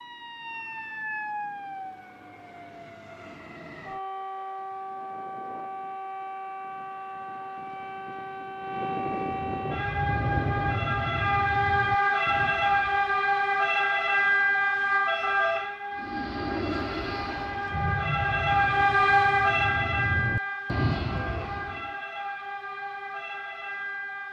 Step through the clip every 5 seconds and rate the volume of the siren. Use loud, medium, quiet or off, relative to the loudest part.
quiet, medium, loud, loud, medium.